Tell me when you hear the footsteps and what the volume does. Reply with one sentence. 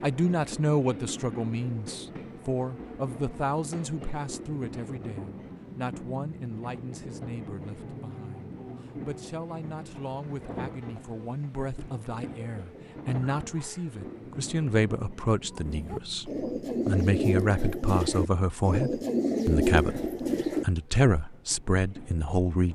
The footsteps can't be heard in this clip.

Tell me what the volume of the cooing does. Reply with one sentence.
The loudness of the cooing goes up.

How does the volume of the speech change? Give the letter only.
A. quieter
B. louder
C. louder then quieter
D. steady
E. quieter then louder
E.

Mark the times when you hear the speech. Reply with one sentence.
The speech can be heard from 0.0 to 22.6 s.